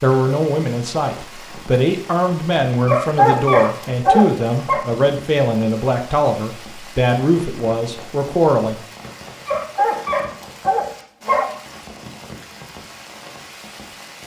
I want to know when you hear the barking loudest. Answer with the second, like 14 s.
3 s.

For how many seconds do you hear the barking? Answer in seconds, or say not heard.
4 s.